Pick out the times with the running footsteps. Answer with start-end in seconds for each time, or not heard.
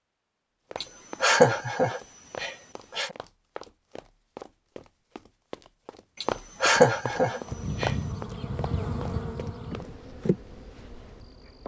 0.7-9.9.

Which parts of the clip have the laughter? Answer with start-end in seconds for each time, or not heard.
0.8-3.1, 6.2-8.0.